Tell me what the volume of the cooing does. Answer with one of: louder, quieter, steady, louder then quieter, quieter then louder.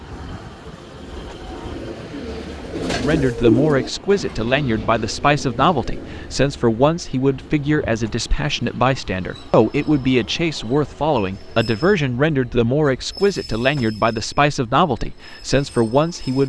louder then quieter.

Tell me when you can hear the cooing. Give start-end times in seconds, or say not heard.
1.7-6.2.